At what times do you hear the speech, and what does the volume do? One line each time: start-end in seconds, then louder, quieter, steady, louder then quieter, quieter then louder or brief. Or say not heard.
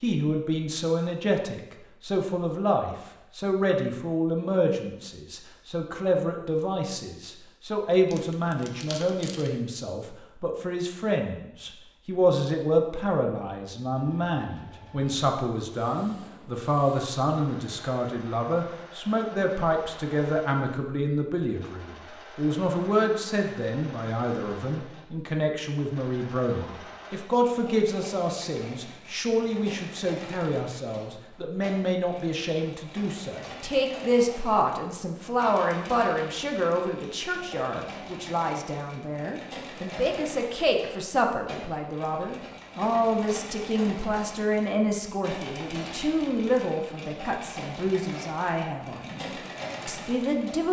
0.0-50.6 steady.